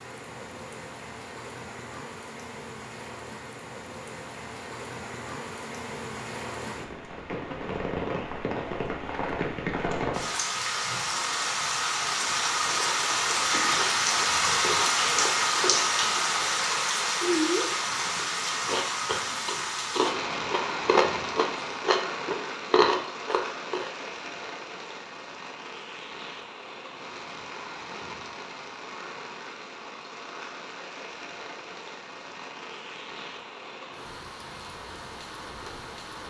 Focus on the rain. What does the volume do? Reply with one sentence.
The volume of the rain goes up, then down.